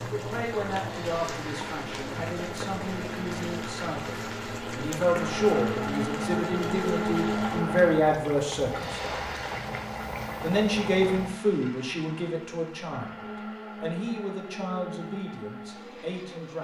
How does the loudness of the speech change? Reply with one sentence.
The loudness of the speech goes up, then down.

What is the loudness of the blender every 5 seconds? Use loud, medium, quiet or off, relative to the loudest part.
medium, loud, medium, medium.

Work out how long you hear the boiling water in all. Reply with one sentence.
You can hear the boiling water for 11 seconds altogether.